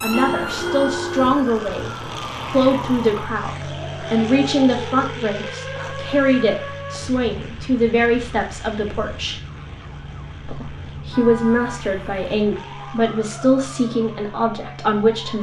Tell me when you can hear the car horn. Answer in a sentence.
The car horn can be heard from 0.1 to 1.4 s and from 11.1 to 12.2 s.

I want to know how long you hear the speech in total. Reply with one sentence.
The speech can be heard for 14 seconds in total.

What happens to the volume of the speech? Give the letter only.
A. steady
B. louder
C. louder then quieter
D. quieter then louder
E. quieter
A.